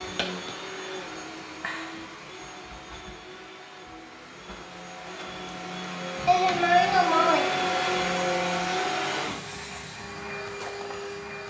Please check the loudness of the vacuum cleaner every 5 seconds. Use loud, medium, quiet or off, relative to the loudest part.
medium, loud, medium.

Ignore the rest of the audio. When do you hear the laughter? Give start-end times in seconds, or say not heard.
6.2-7.5.